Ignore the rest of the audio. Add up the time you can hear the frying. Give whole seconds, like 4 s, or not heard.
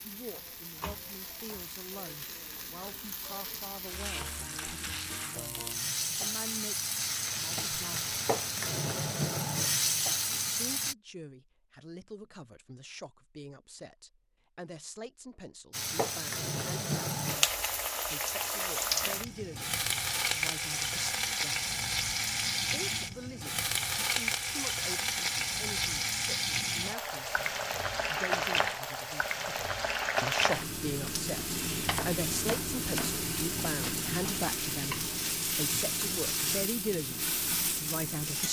34 s.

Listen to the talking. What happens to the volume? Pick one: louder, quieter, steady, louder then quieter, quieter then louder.
louder.